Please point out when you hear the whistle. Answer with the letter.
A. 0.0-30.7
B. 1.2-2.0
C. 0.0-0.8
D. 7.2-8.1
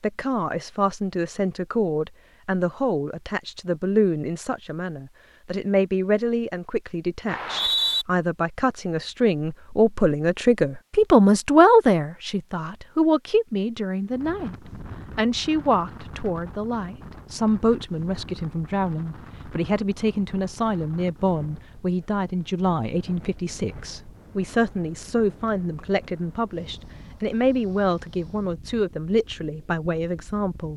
D.